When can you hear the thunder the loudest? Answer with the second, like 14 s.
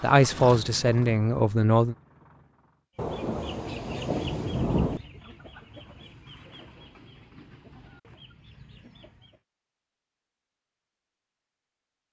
5 s.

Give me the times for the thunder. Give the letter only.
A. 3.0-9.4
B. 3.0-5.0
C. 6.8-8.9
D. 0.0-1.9
B.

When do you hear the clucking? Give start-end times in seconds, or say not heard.
3.0-9.4.